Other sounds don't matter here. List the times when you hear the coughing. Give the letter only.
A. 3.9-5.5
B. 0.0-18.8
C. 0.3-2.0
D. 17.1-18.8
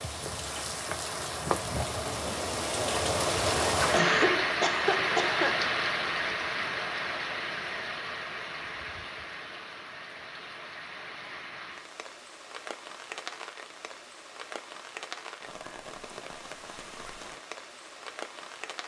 A.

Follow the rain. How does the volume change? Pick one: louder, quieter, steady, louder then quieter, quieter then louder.
quieter.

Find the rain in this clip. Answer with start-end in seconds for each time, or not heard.
0.0-18.8.